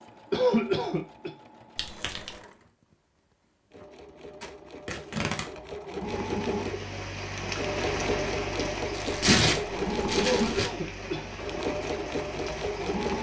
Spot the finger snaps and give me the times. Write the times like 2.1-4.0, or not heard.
not heard.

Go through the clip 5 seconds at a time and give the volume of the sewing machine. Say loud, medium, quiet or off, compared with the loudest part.
quiet, loud, loud.